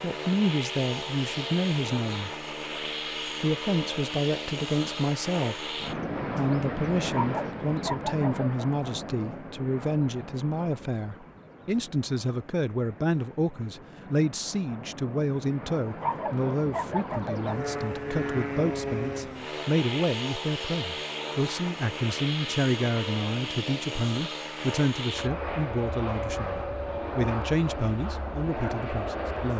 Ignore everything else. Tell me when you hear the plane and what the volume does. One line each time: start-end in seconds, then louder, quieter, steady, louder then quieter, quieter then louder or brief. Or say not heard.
0.0-29.5 quieter then louder.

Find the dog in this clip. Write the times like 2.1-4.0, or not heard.
7.0-8.7, 15.9-17.6.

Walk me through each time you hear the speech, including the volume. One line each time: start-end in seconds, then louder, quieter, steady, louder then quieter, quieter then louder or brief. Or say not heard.
0.0-2.3 brief
3.4-29.5 steady.